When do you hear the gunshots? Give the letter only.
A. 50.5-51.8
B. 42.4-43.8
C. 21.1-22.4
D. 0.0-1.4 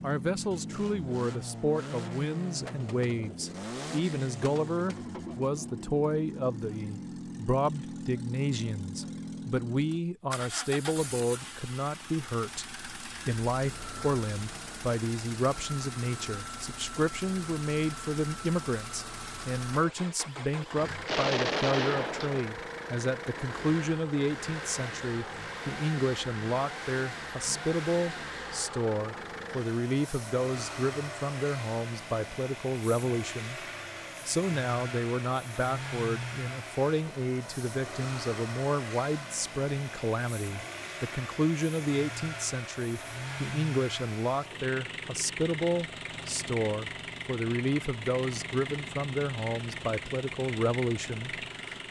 C.